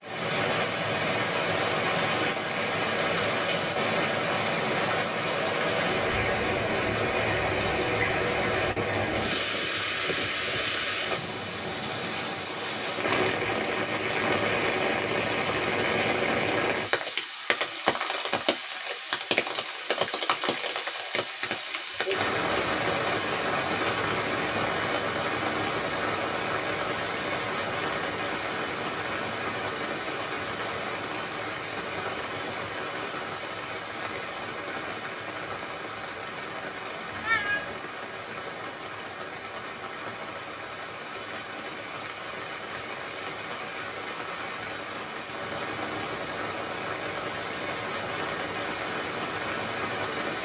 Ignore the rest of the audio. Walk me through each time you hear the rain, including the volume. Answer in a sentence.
The rain can be heard from 0.0 to 50.3 s, getting quieter.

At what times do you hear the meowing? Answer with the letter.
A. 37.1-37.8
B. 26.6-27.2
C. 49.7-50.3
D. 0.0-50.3
A.